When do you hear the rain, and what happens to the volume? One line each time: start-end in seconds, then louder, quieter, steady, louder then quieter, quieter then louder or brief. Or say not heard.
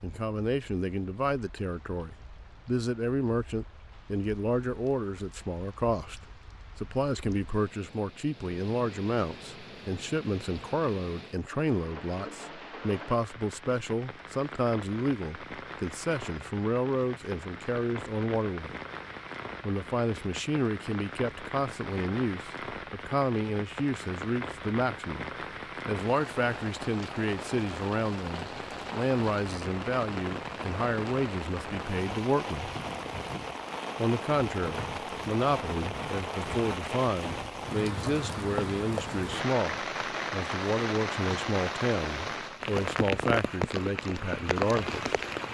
0.0-45.5 louder.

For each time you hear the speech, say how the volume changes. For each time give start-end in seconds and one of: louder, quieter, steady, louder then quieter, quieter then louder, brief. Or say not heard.
0.0-18.8 steady
19.6-32.7 steady
34.0-45.1 steady.